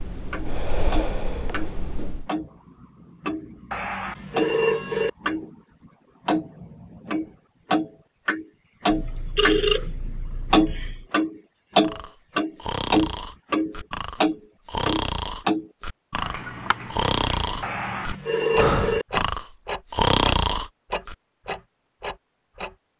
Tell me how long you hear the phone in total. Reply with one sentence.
You can hear the phone for 5 seconds altogether.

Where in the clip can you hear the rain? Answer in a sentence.
The rain can't be heard in this clip.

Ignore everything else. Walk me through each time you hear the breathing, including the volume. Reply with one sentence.
You can hear the breathing briefly from 0.0 to 2.3 s; and from 11.8 to 21.1 s, getting louder.